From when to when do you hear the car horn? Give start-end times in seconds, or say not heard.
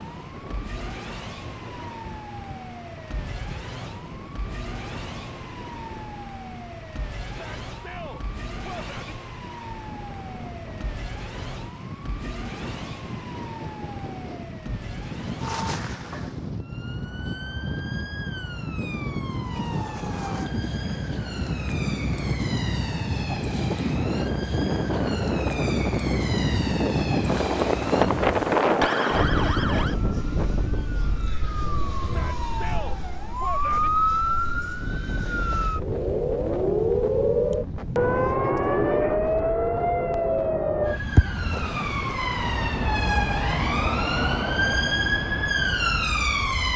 not heard.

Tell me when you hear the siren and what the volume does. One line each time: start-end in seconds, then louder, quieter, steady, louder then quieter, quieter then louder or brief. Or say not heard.
0.0-46.7 louder.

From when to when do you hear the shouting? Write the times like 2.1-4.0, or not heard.
7.2-9.2, 32.0-33.9.